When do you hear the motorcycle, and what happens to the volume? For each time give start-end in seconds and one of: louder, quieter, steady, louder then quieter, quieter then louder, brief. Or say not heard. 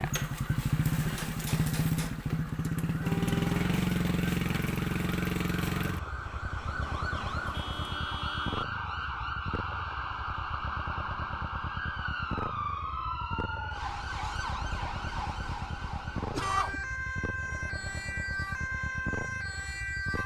0.0-20.2 quieter.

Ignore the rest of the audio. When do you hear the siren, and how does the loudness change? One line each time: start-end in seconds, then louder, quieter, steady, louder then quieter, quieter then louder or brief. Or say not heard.
0.0-20.2 louder.